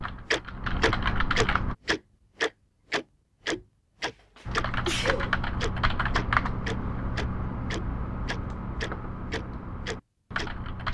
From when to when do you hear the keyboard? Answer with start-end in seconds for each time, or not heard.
0.0-1.8, 4.5-10.8.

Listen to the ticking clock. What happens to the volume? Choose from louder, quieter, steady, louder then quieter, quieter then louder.
quieter.